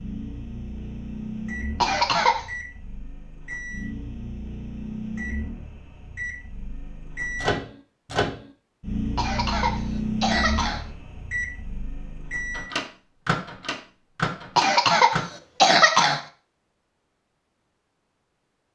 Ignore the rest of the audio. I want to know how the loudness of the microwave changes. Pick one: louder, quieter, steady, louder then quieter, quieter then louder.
louder.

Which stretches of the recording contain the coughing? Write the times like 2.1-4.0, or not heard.
1.8-2.5, 9.2-10.8, 14.6-16.2.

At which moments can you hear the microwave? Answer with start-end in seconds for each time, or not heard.
0.0-15.2.